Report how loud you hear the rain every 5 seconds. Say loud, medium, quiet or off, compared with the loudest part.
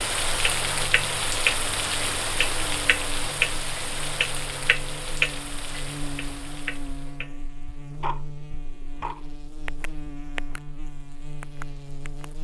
loud, medium, off.